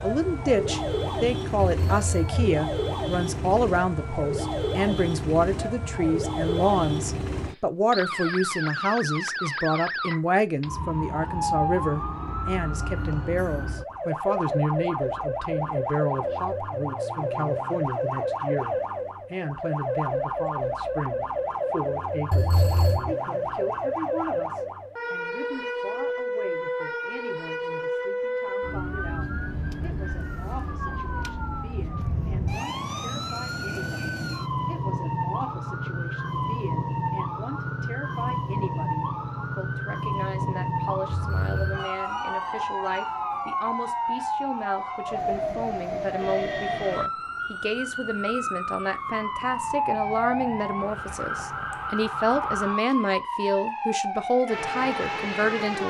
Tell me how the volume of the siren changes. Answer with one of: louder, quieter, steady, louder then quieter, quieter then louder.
steady.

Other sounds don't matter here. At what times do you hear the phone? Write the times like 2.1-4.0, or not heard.
1.6-2.5, 22.3-23.1, 41.1-41.9.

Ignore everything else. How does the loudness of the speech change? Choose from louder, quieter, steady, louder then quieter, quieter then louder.
quieter then louder.